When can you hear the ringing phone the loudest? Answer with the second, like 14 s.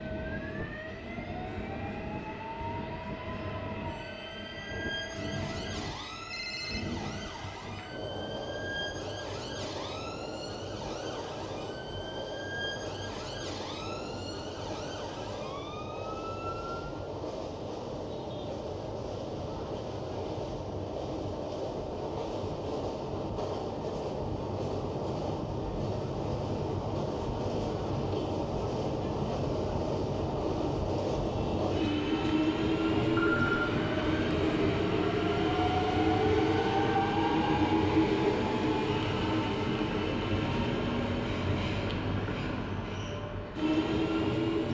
33 s.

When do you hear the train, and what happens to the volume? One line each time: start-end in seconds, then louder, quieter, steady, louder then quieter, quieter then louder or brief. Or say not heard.
0.0-44.6 louder.